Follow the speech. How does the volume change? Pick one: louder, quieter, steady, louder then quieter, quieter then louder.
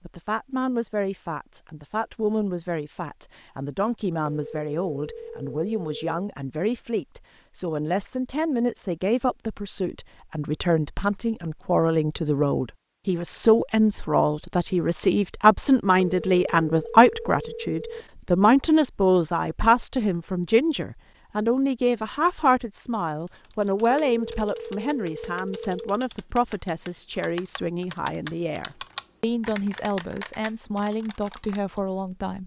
louder then quieter.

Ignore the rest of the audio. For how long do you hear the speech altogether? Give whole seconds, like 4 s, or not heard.
32 s.